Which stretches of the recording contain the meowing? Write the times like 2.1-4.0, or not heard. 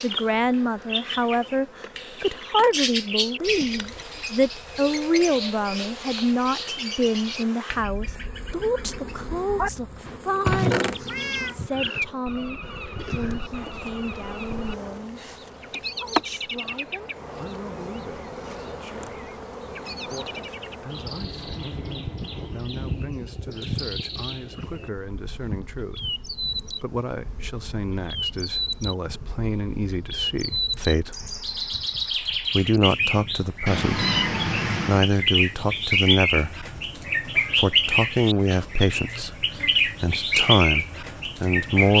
10.4-11.6, 33.6-35.1.